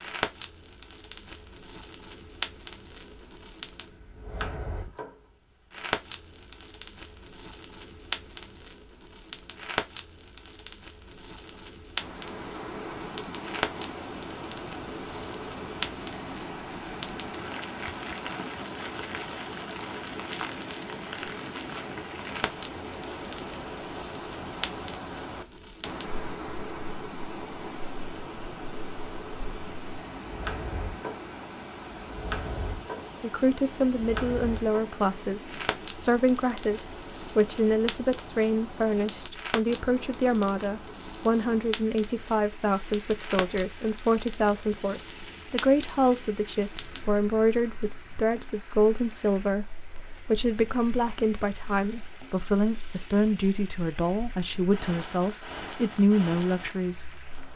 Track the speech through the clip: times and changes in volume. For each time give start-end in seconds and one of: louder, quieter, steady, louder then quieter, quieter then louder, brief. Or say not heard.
33.2-57.5 steady.